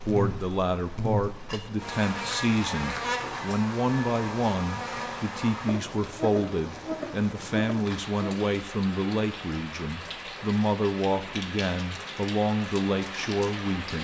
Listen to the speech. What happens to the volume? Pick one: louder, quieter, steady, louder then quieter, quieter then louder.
steady.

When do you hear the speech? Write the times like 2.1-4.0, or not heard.
0.0-13.9.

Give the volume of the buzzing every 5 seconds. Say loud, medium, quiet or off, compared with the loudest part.
loud, loud, off.